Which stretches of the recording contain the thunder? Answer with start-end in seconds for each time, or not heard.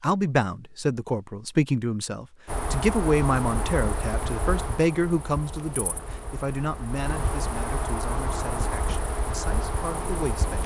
not heard.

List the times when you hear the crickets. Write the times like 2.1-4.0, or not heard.
2.5-10.6.